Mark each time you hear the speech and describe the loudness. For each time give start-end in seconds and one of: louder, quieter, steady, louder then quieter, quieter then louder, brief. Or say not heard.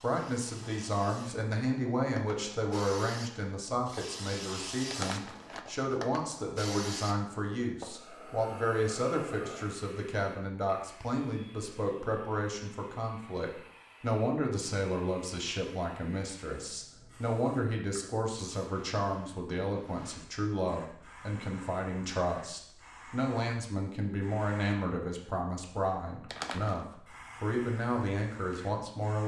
0.0-29.2 steady.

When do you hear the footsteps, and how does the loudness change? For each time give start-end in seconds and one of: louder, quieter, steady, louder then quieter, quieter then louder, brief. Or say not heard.
not heard.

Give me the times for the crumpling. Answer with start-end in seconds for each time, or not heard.
4.9-5.7, 26.3-26.9.